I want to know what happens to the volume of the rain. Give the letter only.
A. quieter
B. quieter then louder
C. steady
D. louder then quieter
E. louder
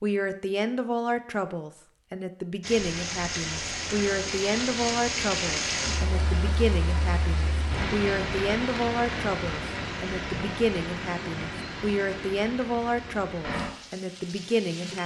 A.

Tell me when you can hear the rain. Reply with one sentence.
You can hear the rain from 2.6 to 15.0 s.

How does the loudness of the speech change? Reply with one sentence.
The loudness of the speech stays about the same.